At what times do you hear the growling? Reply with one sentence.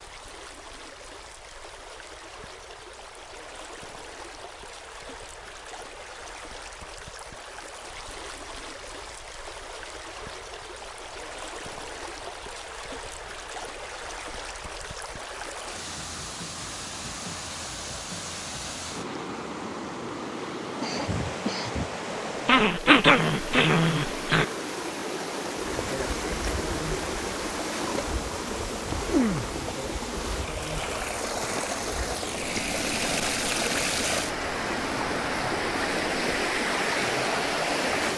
You can hear the growling from 22.4 to 24.4 s.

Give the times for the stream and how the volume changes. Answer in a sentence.
The stream can be heard from 0.0 to 38.1 s, getting louder.